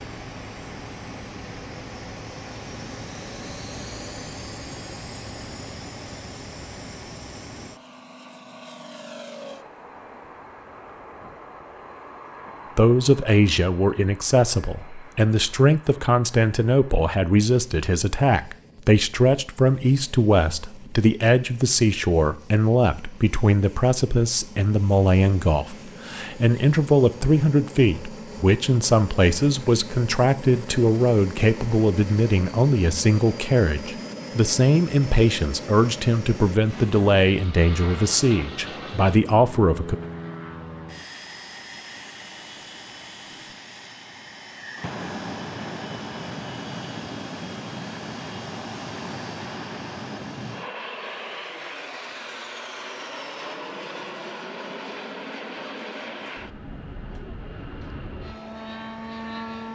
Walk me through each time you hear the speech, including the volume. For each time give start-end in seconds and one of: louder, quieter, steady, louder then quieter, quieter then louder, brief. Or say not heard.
12.8-40.0 steady.